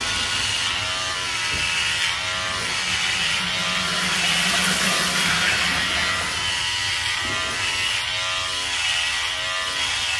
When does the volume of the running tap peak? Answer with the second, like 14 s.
5 s.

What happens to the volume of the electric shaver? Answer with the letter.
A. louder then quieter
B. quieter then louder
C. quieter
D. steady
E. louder
D.